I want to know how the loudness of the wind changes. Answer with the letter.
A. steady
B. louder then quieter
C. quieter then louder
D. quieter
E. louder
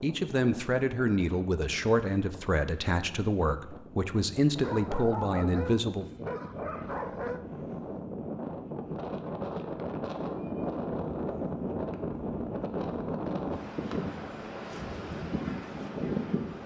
E.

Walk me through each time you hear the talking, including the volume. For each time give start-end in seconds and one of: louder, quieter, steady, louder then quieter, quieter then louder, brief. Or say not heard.
0.0-6.2 steady.